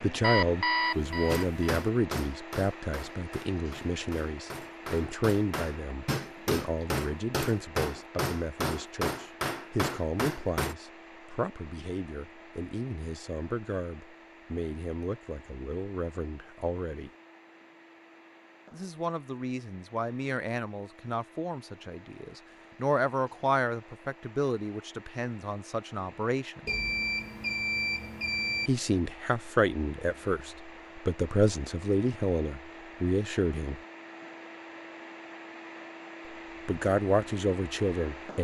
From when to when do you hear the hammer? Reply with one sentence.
You can hear the hammer from 1.2 to 10.8 s.